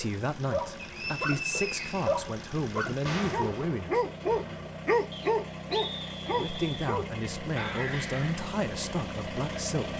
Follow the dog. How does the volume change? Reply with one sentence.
The volume of the dog goes up, then down.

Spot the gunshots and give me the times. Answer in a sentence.
The gunshots can be heard from 3.0 to 4.8 s.